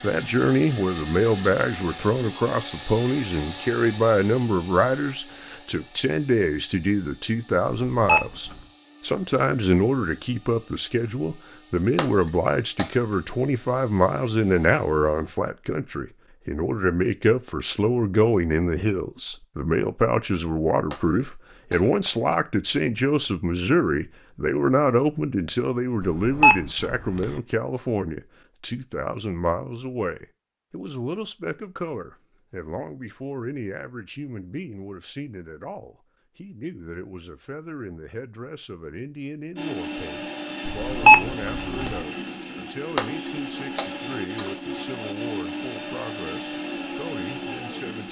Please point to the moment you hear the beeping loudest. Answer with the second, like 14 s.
41 s.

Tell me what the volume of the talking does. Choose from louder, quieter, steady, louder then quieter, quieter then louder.
quieter.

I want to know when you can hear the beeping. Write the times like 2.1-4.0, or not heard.
7.9-8.6, 26.0-27.4, 40.6-42.0.